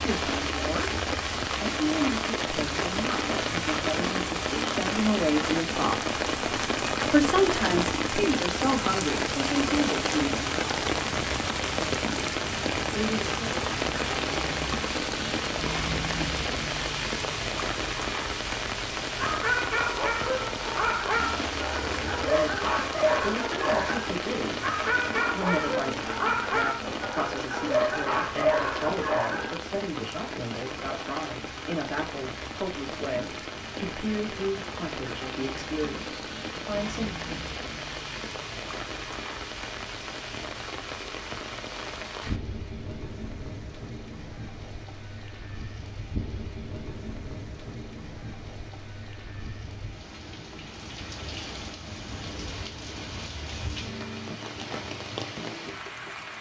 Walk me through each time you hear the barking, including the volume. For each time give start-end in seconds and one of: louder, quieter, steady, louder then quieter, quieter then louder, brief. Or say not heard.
19.1-29.6 steady.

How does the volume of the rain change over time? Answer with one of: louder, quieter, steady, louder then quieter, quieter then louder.
quieter.